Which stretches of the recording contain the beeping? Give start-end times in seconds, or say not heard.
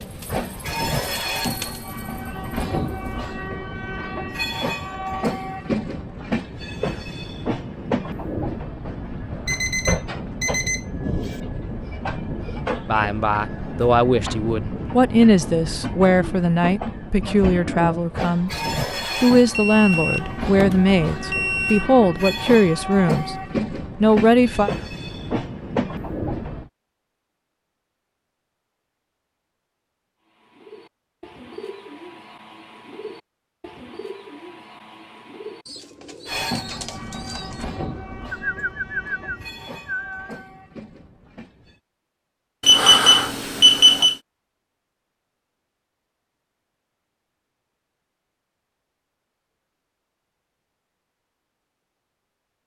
9.4-11.4, 19.4-21.9, 42.6-44.1.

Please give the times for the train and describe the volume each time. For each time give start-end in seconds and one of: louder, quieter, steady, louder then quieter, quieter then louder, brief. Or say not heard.
0.0-26.7 steady
36.2-41.8 quieter.